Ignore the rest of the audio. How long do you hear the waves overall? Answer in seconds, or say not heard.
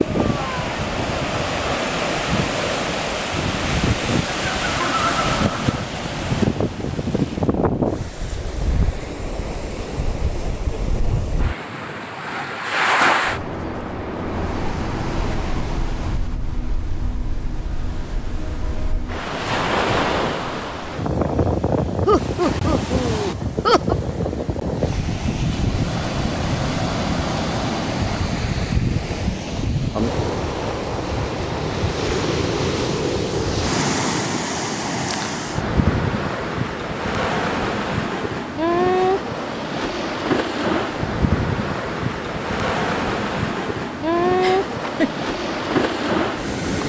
47 s.